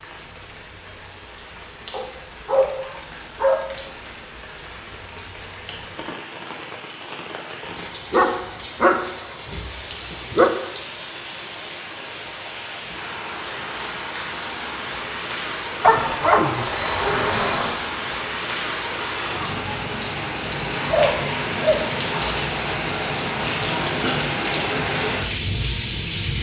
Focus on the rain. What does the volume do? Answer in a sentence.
The volume of the rain goes up.